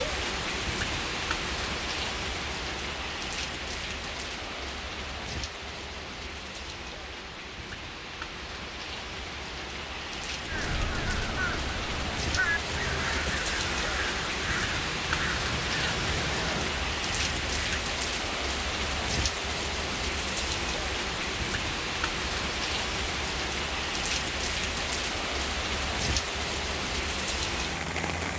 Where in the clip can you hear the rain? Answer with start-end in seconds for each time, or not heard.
0.0-28.3.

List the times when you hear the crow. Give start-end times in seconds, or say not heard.
10.4-17.8.